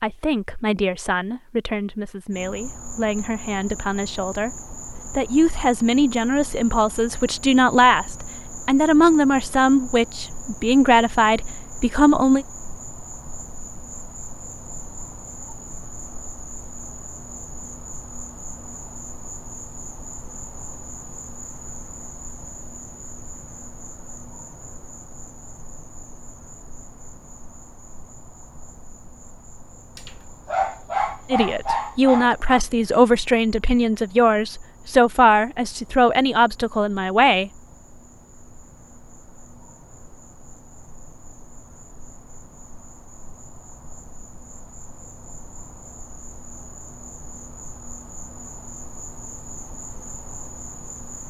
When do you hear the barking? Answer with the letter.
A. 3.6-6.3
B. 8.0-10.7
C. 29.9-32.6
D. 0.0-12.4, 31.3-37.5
C.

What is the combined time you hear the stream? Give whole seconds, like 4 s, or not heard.
not heard.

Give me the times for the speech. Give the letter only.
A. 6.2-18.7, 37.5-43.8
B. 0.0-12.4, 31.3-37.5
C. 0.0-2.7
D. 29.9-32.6
B.